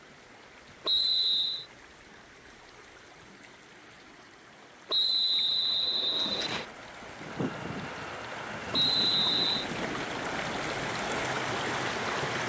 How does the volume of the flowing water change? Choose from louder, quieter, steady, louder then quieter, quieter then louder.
louder.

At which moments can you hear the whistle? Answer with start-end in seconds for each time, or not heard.
0.8-1.6, 4.9-6.7, 8.7-9.7.